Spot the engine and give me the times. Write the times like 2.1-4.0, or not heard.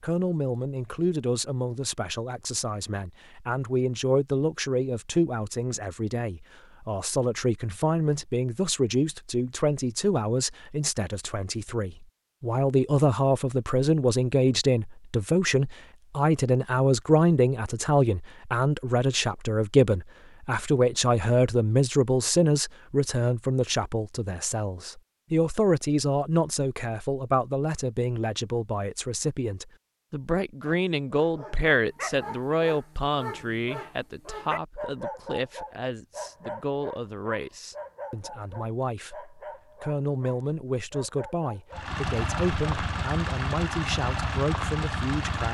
41.7-45.4.